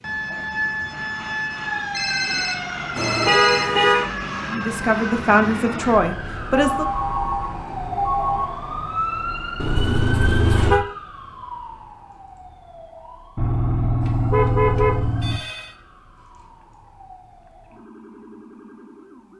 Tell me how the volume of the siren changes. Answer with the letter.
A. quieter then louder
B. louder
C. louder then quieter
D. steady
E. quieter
E.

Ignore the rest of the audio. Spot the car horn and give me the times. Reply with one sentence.
You can hear the car horn from 3.0 to 4.1 s, from 9.6 to 10.8 s and from 13.3 to 15.4 s.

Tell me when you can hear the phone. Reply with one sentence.
You can hear the phone from 1.9 to 3.7 s, from 6.5 to 8.4 s and from 14.0 to 15.8 s.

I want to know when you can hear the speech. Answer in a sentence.
The speech can be heard from 4.5 to 6.8 s.